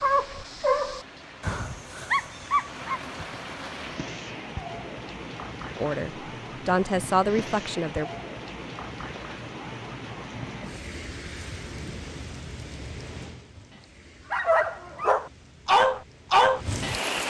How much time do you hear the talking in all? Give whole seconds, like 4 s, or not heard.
2 s.